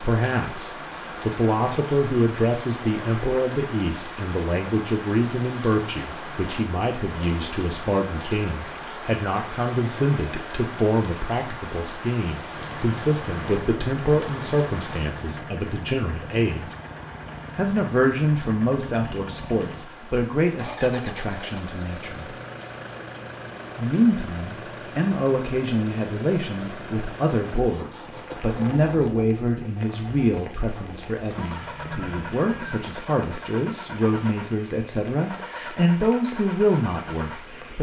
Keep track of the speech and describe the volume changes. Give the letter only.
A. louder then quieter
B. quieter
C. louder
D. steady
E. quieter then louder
D.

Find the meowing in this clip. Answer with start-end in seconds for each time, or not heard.
31.4-32.8.